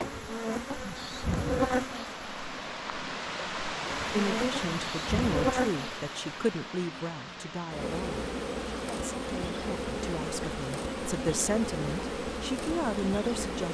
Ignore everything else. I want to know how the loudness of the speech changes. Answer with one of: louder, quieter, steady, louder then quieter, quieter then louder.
quieter then louder.